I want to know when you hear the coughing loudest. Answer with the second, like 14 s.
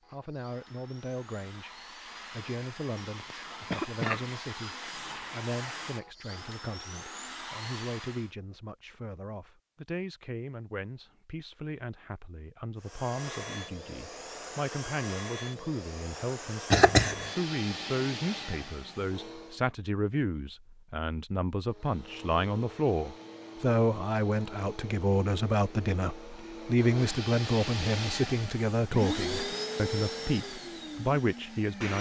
17 s.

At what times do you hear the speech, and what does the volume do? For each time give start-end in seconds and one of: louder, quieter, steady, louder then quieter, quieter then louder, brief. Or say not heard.
0.1-31.9 louder.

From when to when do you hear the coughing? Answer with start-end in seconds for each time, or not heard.
3.0-4.2, 16.7-17.3.